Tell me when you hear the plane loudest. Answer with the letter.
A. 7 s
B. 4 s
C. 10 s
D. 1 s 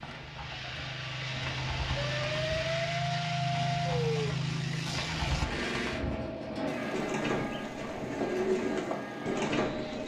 B.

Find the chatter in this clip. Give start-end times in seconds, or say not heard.
not heard.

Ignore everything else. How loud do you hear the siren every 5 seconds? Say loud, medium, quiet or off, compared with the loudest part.
loud, medium.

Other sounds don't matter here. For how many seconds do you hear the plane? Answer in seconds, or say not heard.
10 s.